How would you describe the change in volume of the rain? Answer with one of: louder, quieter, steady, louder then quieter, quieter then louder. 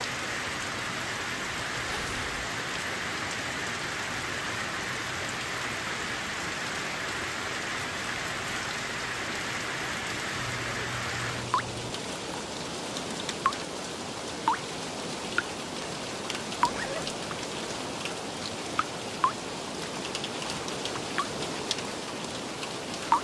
steady.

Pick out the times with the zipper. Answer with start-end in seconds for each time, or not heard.
1.9-2.4, 10.3-11.9, 16.6-17.1.